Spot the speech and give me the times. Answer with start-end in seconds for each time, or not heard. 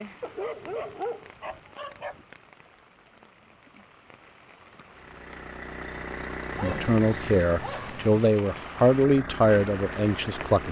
6.6-10.6.